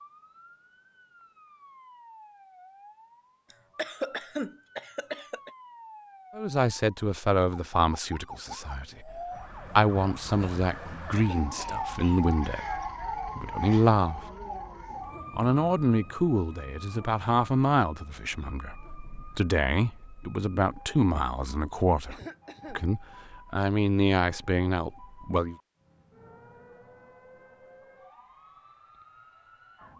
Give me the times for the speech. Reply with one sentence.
You can hear the speech from 6.3 to 14.2 s and from 15.3 to 25.6 s.